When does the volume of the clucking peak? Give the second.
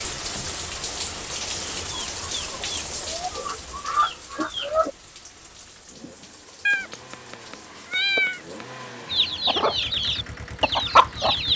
11 s.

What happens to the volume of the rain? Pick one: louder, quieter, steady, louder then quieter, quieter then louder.
quieter.